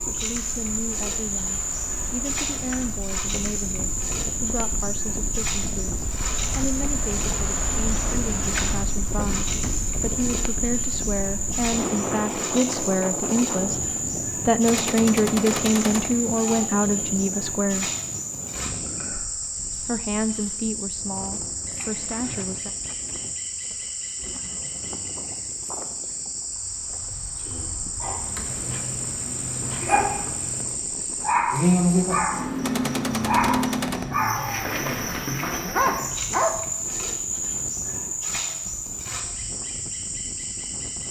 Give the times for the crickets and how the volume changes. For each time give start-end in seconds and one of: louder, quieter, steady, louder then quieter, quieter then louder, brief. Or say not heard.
0.0-41.0 steady.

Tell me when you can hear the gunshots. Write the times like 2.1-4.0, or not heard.
14.7-16.6, 32.6-34.6.